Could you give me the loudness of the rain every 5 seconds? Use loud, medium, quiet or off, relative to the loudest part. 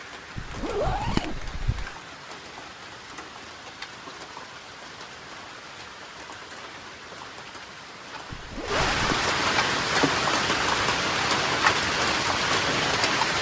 quiet, medium, loud.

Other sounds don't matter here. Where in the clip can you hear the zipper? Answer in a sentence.
The zipper can be heard from 0.3 to 1.9 s and from 8.3 to 9.3 s.